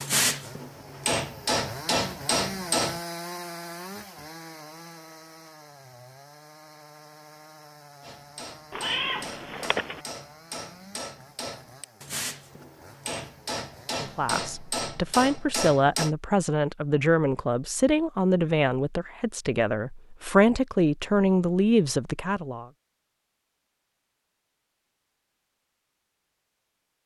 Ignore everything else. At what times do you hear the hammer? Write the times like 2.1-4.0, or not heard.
0.0-3.0, 8.0-16.1.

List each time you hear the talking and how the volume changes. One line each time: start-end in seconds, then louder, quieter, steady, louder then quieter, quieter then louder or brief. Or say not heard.
13.9-22.6 steady.